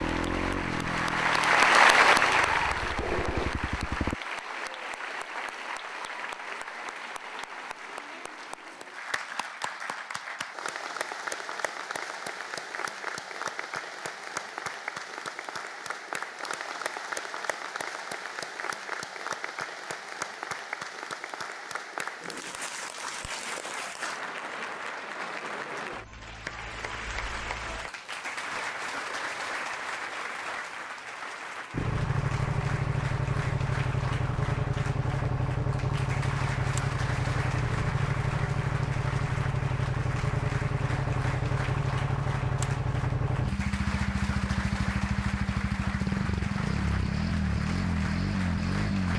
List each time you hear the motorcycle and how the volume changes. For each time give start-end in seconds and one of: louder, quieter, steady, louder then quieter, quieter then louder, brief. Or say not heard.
0.0-4.2 quieter then louder
31.7-49.1 steady.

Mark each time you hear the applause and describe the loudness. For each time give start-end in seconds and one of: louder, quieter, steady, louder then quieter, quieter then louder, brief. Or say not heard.
0.0-49.1 quieter.